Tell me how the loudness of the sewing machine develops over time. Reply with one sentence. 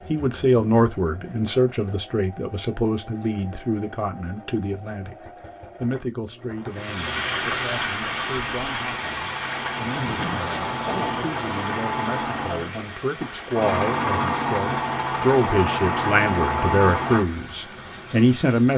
The volume of the sewing machine goes up.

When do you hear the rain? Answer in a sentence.
The rain can be heard from 6.7 to 18.7 s.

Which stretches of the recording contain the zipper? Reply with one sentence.
You can hear the zipper from 9.8 to 11.4 s.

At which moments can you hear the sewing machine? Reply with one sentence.
You can hear the sewing machine from 0.0 to 17.2 s.